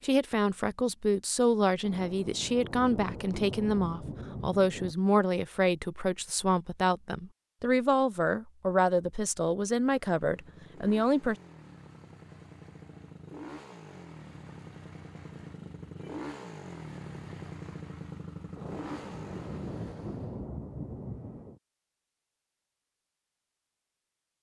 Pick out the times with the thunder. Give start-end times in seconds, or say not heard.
1.8-5.0, 18.6-21.6.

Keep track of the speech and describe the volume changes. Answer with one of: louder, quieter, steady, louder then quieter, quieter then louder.
steady.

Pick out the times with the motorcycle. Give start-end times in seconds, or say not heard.
9.8-20.4.